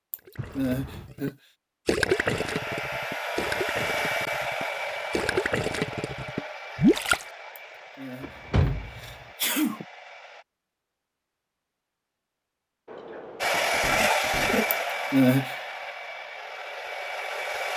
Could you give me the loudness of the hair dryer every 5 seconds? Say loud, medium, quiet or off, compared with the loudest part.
medium, quiet, loud, medium.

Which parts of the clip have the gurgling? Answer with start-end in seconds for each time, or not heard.
0.1-7.2.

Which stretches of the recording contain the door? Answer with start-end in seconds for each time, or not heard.
0.3-1.1, 8.2-9.2, 12.8-14.8.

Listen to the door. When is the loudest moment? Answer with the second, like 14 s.
9 s.